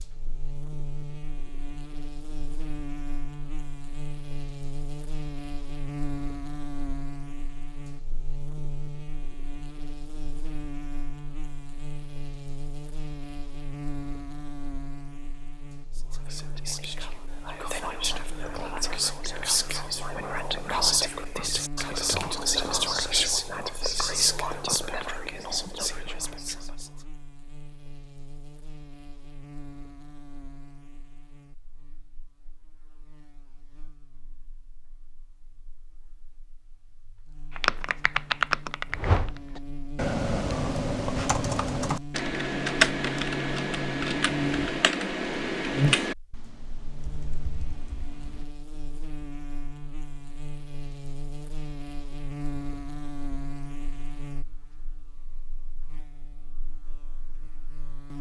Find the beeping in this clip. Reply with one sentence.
You can't hear the beeping here.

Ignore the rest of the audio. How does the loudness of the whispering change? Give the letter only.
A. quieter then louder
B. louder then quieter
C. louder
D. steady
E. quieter
B.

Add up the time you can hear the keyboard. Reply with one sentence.
You can hear the keyboard for 11 seconds altogether.